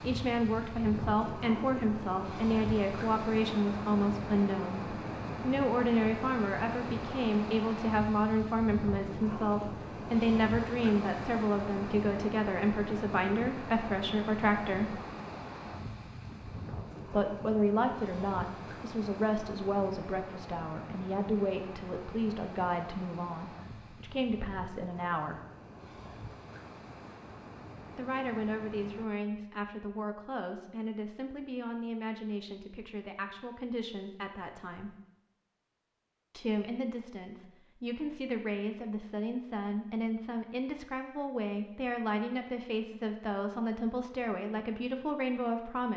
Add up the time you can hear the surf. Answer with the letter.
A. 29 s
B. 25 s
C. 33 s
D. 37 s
A.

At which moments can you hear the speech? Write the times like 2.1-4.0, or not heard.
0.0-15.0, 17.1-25.4, 27.9-34.9, 36.3-45.9.